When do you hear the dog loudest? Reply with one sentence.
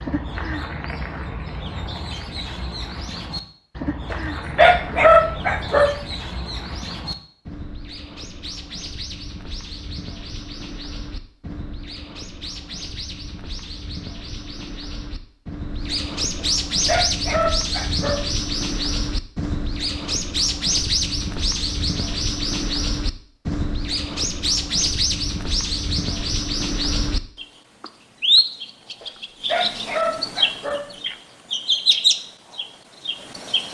The loudest moment of the dog is at 5 seconds.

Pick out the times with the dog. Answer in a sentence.
You can hear the dog from 4.1 to 6.0 s, from 16.4 to 18.2 s and from 29.0 to 30.9 s.